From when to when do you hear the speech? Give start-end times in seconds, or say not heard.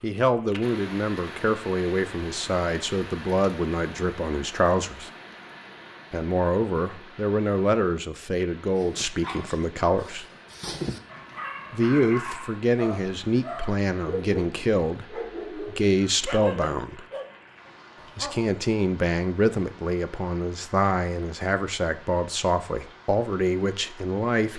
0.0-5.1, 6.1-10.2, 11.7-17.1, 18.1-24.5.